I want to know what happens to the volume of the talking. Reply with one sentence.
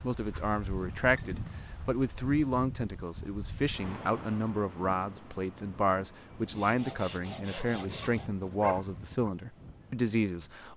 The loudness of the talking stays about the same.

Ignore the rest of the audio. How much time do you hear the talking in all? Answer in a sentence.
The talking can be heard for 11 seconds in total.